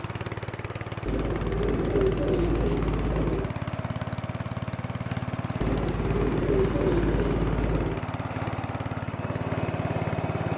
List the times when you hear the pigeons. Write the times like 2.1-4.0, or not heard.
1.1-3.5, 5.6-8.0.